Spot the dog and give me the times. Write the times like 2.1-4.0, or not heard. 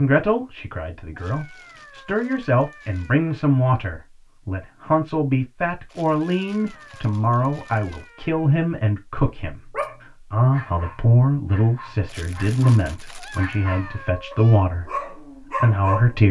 9.7-16.2.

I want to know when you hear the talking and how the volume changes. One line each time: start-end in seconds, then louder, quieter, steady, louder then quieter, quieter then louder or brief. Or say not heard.
0.0-16.2 steady.